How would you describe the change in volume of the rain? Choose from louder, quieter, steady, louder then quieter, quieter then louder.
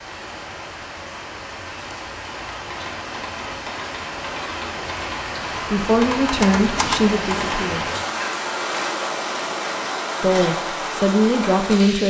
louder.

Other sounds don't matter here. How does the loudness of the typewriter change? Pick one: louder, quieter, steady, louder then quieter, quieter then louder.
louder.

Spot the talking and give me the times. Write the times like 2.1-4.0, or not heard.
5.7-8.0, 10.2-12.0.